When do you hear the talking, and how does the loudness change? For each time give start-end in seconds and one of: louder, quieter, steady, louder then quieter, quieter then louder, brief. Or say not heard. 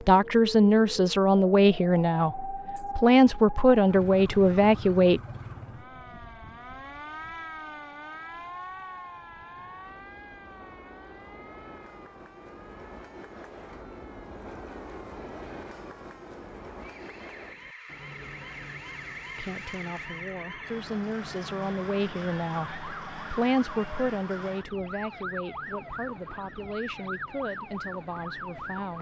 0.0-5.2 quieter then louder
19.4-28.9 louder then quieter.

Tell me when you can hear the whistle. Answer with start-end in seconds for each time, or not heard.
not heard.